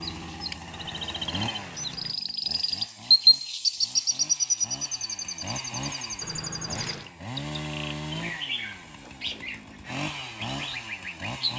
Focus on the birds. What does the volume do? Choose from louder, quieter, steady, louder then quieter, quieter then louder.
louder then quieter.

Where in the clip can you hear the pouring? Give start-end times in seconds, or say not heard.
0.7-2.2, 6.2-7.2.